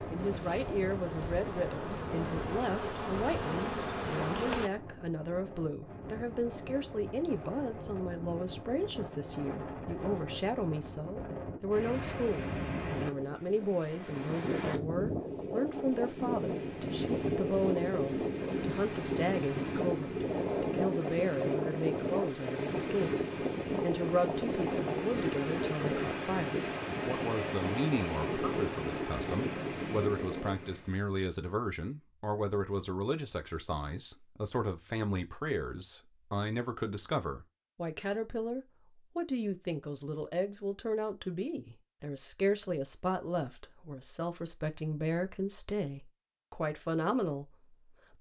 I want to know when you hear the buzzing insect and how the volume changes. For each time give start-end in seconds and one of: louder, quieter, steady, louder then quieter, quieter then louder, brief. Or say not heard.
0.0-4.7 louder.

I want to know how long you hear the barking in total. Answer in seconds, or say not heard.
not heard.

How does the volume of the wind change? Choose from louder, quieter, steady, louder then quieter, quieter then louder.
louder.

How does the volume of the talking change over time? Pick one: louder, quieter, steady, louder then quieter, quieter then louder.
steady.